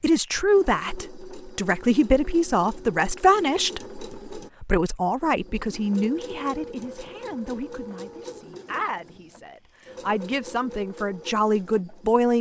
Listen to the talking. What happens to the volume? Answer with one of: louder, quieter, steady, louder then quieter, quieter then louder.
quieter then louder.